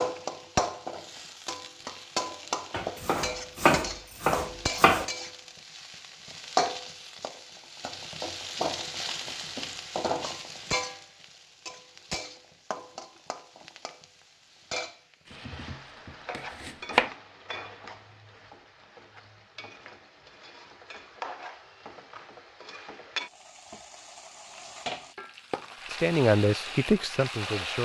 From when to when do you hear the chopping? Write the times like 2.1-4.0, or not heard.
2.7-5.1, 15.4-17.1.